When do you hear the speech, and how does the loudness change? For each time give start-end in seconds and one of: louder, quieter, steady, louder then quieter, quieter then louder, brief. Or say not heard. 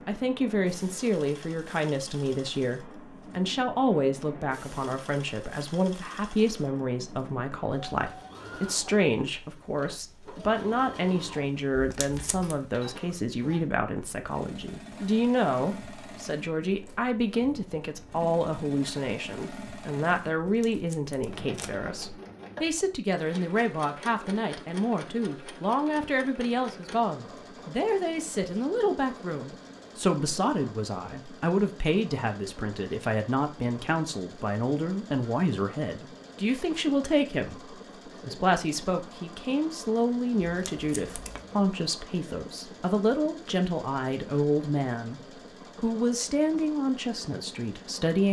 0.1-45.2 steady
45.8-48.2 brief.